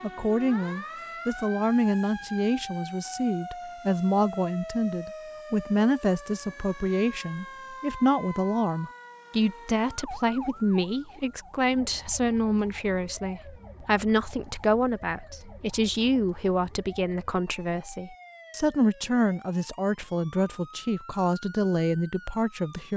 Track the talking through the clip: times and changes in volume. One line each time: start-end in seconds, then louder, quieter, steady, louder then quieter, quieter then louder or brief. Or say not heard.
0.0-22.9 steady.